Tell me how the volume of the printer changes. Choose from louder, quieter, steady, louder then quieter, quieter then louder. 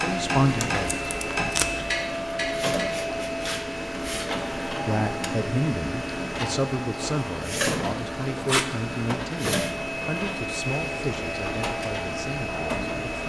steady.